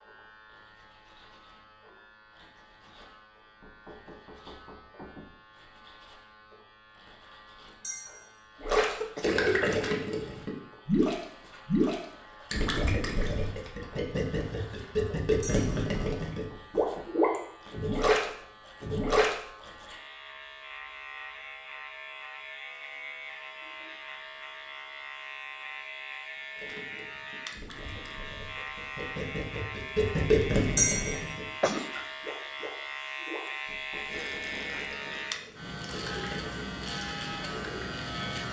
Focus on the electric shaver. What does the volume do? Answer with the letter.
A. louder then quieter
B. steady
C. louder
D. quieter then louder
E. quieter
C.